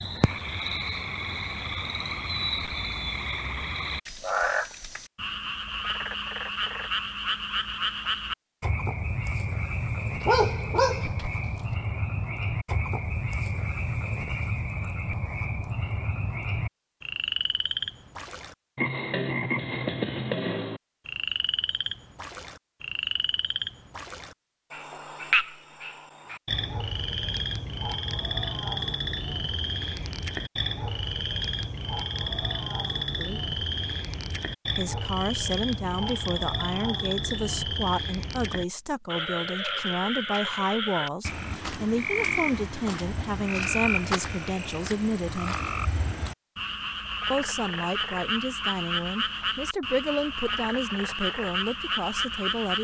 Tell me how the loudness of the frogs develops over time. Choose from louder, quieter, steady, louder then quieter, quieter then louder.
steady.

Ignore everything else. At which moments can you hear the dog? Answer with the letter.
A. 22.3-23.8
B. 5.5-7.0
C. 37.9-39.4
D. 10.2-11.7
D.